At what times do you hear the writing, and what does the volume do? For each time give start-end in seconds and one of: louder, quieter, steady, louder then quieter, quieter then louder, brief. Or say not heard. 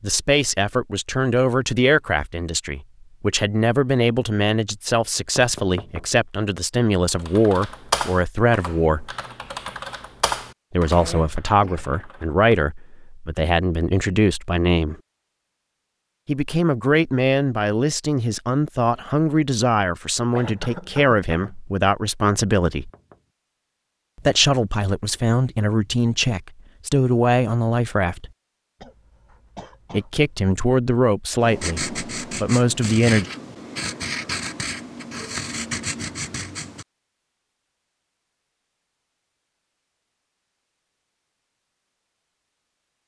31.4-36.9 steady.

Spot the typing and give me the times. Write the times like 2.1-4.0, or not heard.
7.2-12.7.